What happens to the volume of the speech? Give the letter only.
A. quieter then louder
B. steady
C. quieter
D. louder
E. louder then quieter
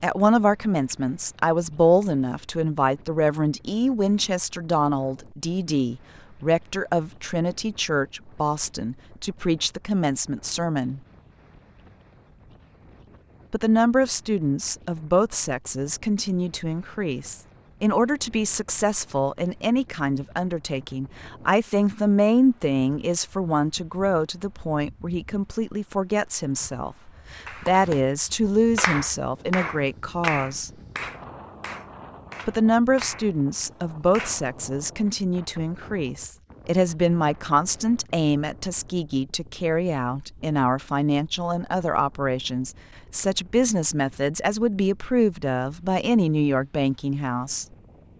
B.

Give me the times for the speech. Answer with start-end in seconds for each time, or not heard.
0.0-11.0, 13.5-30.7, 32.5-47.6.